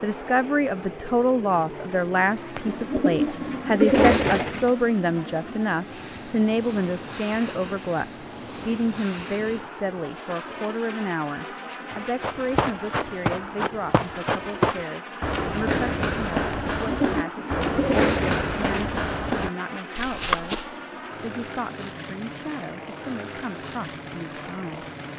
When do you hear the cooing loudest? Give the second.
4 s.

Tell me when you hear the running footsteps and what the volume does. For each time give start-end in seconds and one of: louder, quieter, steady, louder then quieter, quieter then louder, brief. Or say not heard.
11.9-20.7 steady.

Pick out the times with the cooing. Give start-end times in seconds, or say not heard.
2.5-4.7, 16.7-18.9.